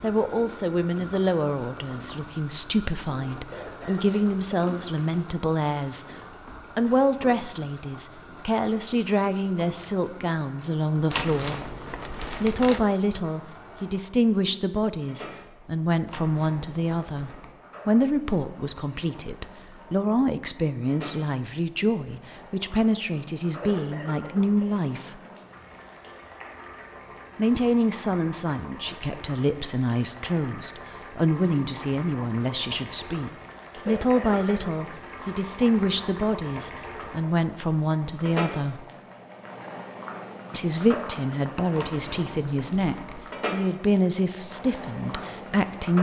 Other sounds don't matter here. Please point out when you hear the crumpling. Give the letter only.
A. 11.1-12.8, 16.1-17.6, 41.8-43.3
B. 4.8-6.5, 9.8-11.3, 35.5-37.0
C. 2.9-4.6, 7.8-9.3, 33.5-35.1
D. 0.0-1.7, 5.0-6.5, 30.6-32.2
A.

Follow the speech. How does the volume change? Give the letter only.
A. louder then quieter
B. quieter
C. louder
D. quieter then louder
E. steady
E.